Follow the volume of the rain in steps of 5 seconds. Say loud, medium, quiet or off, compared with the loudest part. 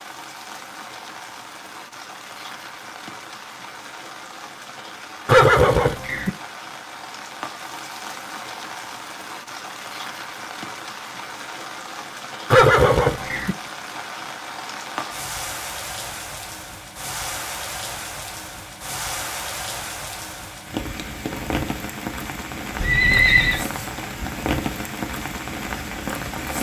medium, medium, medium, loud, loud, loud.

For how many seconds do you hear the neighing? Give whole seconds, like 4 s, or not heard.
3 s.